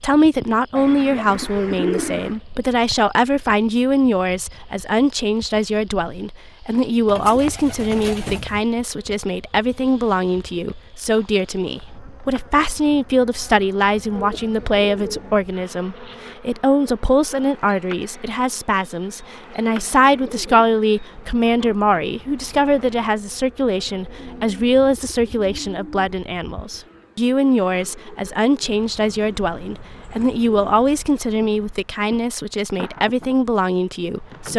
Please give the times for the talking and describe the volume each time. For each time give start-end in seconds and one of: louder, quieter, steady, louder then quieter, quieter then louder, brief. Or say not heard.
0.0-34.5 steady.